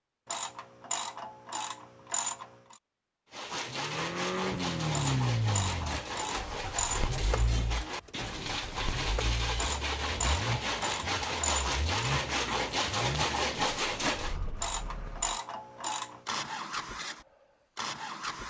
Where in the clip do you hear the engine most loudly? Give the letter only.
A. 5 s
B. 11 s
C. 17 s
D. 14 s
A.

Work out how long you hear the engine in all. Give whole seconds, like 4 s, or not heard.
15 s.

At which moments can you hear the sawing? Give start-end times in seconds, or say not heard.
3.3-14.3.